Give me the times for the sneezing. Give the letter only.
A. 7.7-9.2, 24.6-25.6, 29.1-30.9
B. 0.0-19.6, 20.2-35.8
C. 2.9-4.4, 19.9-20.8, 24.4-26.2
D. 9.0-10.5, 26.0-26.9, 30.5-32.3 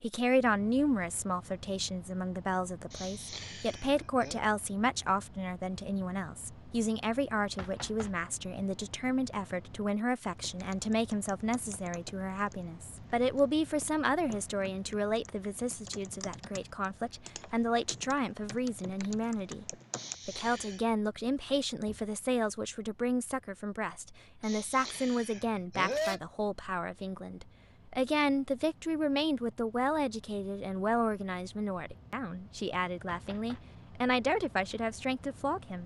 C.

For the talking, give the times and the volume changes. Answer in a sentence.
The talking can be heard from 0.0 to 19.6 s, at a steady volume; and from 20.2 to 35.8 s, at a steady volume.